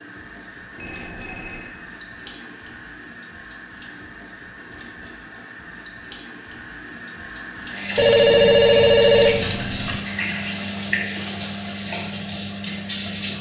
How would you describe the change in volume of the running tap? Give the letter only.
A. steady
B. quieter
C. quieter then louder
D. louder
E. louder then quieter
D.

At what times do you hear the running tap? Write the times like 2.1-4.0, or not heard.
0.0-13.3.